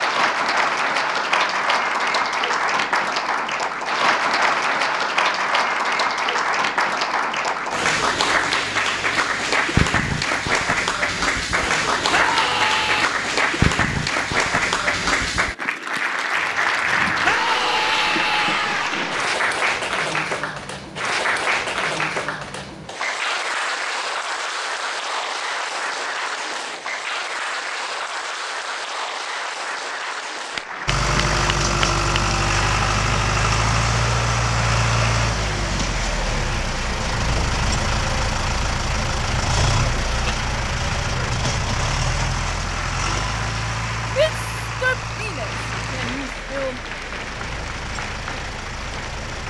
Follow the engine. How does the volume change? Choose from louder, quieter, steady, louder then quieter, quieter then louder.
quieter.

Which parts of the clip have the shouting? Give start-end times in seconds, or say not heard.
12.1-13.1, 17.2-18.9, 44.0-46.8.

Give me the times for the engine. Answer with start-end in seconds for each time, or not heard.
30.9-49.4.